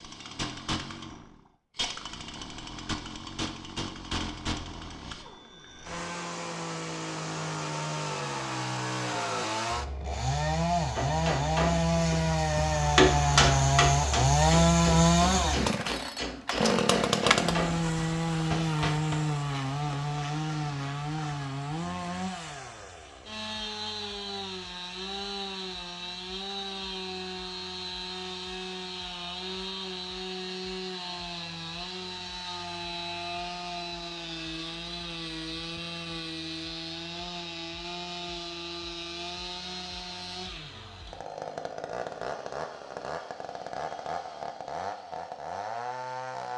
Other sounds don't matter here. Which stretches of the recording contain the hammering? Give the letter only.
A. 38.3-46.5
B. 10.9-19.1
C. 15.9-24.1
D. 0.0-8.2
B.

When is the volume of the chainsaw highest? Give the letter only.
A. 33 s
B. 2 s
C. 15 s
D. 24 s
C.